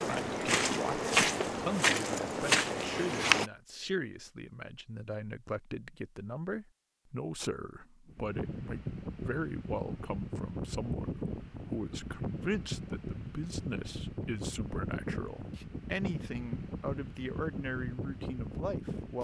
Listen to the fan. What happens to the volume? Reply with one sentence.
The loudness of the fan stays about the same.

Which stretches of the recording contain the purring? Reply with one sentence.
You can't hear the purring here.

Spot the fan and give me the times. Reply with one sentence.
The fan can be heard from 8.1 to 19.1 s.